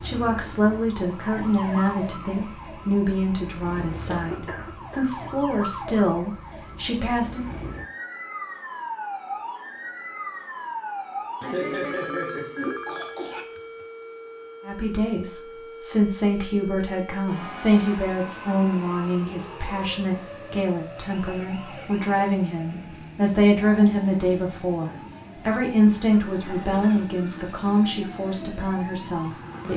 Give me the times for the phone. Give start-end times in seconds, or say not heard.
11.8-13.8.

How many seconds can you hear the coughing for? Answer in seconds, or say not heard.
4 s.